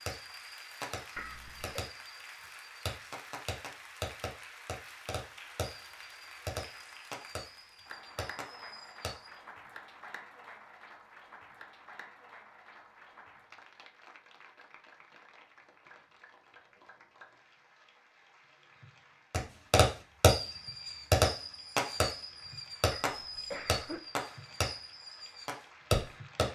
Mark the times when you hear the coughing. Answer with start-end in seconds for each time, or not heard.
1.1-1.8, 22.9-24.0.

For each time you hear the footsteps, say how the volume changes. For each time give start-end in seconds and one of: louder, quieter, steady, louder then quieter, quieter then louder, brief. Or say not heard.
not heard.